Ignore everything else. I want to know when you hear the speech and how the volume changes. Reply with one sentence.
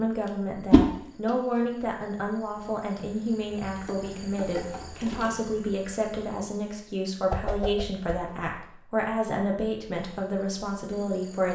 The speech can be heard from 0.0 to 11.5 s, at a steady volume.